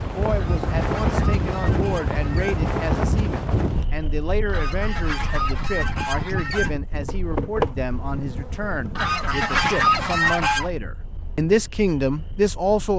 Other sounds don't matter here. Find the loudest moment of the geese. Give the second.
10 s.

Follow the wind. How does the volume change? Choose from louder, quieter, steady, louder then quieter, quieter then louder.
quieter.